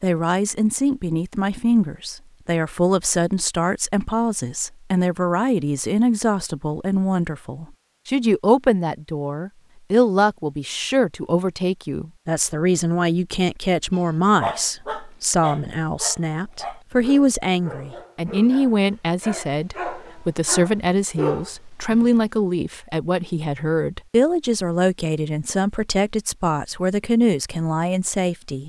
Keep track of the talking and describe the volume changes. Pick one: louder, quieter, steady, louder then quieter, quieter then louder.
steady.